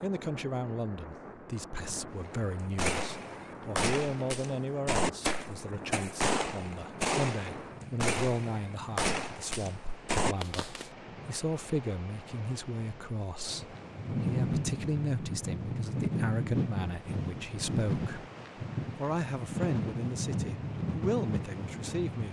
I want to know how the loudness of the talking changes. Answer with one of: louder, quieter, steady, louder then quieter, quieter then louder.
steady.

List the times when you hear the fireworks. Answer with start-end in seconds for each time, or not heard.
2.2-10.9.